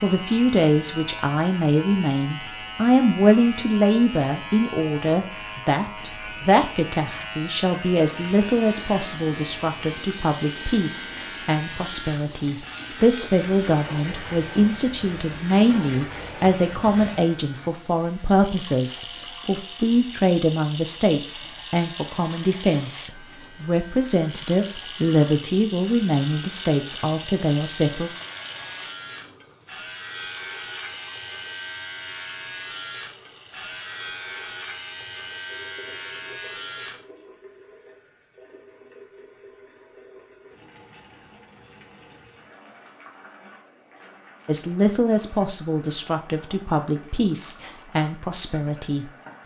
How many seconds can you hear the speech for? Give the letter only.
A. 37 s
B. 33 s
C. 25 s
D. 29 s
B.